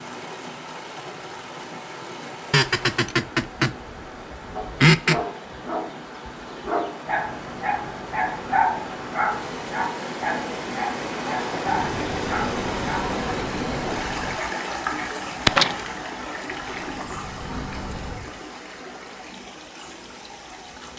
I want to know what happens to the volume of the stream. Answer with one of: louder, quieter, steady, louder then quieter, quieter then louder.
louder then quieter.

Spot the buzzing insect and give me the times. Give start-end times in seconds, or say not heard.
11.7-14.3, 16.5-18.2.